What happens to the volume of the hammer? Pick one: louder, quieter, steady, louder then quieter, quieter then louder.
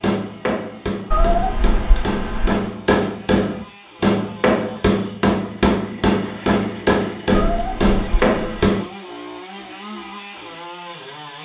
louder.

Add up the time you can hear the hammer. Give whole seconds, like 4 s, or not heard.
9 s.